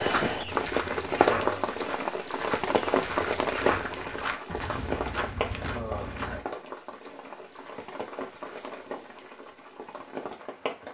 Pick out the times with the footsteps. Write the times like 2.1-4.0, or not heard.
0.0-6.4.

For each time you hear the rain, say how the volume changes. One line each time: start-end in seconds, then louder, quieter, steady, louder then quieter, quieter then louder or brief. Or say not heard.
0.0-10.8 quieter.